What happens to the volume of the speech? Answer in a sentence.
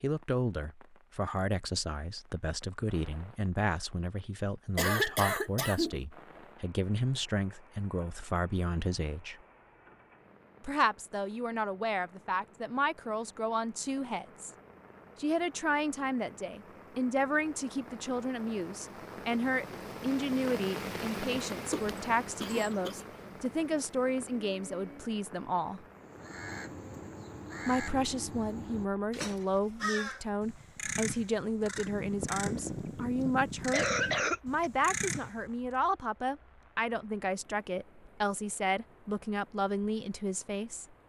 The loudness of the speech stays about the same.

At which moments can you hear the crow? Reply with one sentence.
You can hear the crow from 25.9 to 35.5 s.